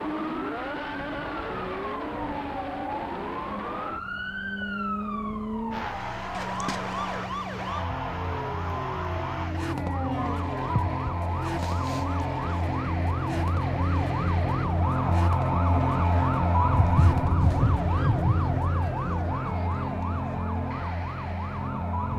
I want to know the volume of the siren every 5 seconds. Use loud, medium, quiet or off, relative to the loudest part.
medium, medium, loud, loud, medium.